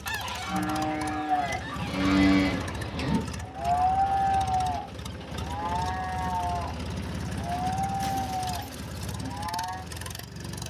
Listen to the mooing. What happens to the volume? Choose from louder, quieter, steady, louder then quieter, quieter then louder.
quieter.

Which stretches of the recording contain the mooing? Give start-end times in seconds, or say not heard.
0.5-9.8.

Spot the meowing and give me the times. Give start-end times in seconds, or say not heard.
not heard.